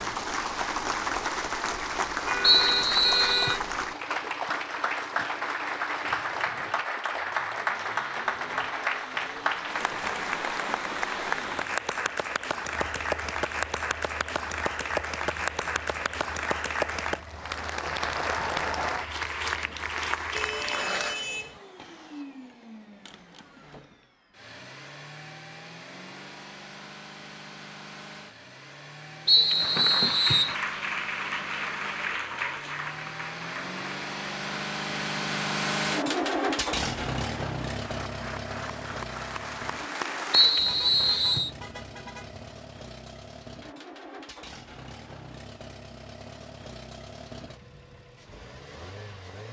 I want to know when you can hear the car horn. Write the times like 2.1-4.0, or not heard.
2.2-3.6, 20.3-21.6, 40.5-42.5.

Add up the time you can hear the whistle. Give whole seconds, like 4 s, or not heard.
4 s.